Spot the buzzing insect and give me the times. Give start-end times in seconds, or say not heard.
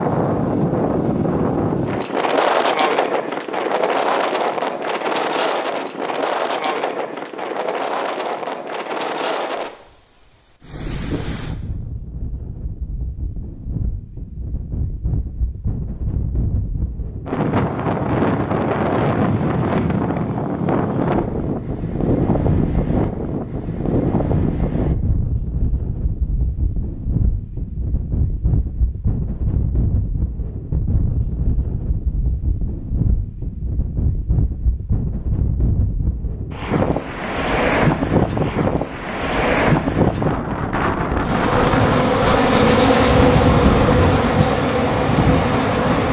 41.2-46.0.